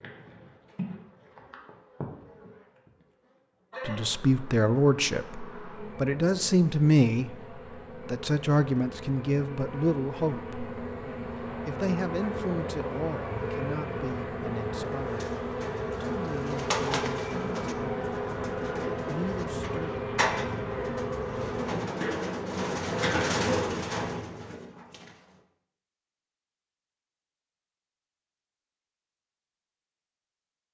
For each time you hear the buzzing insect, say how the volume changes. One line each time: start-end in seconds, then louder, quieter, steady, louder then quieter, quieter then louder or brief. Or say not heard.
0.0-24.0 louder.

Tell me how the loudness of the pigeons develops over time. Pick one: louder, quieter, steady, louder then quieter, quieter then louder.
quieter then louder.